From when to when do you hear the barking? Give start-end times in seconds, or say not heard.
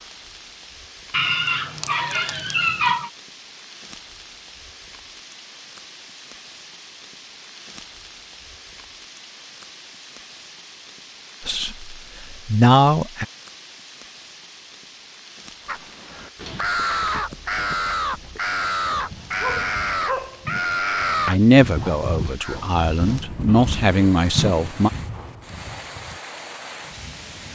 1.1-3.1, 18.9-20.6.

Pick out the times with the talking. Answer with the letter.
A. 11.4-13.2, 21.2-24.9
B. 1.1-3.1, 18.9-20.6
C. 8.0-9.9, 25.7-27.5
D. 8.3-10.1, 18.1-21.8
A.